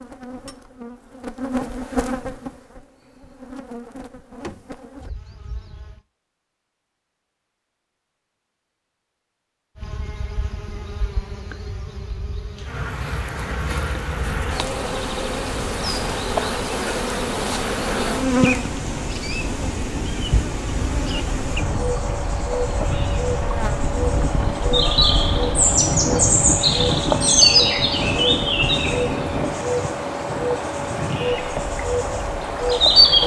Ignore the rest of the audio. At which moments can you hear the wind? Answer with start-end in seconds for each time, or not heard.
14.2-33.2.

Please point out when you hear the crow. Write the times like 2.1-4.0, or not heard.
not heard.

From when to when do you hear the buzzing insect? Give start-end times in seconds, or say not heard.
0.0-6.0, 9.8-33.2.